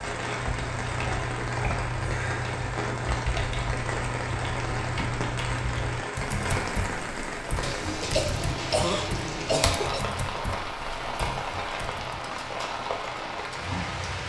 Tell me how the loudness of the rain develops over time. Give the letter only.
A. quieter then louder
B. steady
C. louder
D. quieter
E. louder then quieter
B.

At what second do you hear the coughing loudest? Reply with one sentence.
The volume of the coughing peaks at 9 seconds.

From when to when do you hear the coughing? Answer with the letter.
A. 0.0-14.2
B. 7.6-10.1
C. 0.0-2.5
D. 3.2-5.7
B.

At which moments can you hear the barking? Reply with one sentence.
You can't hear the barking here.